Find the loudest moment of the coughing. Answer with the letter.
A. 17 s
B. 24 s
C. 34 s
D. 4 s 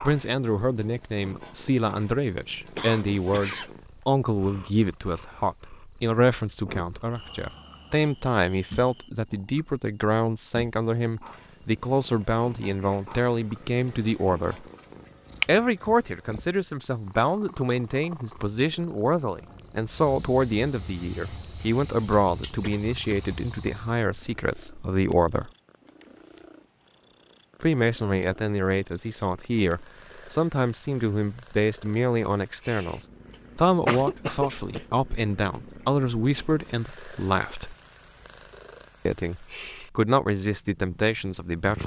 C.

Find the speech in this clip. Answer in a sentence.
The speech can be heard from 0.0 to 14.7 s, from 15.4 to 25.5 s, from 27.6 to 37.8 s and from 39.0 to 41.8 s.